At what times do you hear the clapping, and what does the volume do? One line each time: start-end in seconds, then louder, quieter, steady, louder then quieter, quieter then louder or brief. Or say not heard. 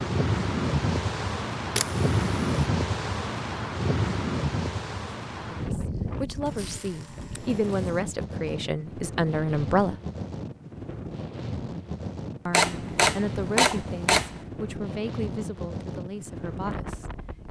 not heard.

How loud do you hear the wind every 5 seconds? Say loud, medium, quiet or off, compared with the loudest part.
loud, medium, medium, medium.